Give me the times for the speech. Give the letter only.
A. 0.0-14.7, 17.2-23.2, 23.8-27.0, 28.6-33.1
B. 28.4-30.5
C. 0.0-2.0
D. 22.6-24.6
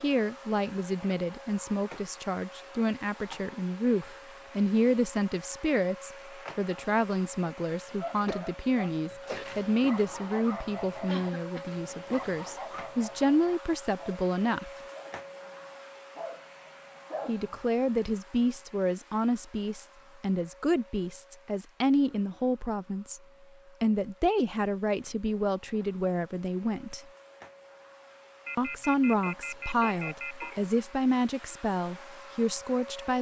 A.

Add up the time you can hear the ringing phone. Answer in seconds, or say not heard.
2 s.